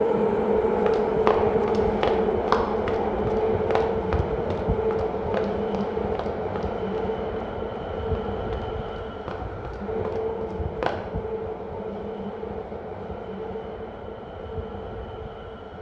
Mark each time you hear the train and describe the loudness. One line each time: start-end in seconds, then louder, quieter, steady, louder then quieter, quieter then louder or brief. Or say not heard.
0.0-15.7 quieter.